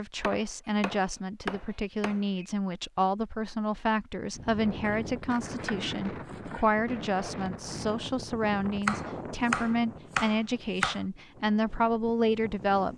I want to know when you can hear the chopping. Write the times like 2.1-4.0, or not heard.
0.2-2.5, 4.8-6.8, 8.8-11.0.